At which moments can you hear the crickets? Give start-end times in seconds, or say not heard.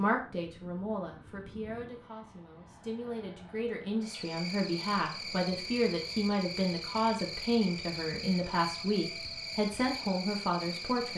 4.0-11.1.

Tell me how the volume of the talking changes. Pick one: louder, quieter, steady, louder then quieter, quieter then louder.
louder.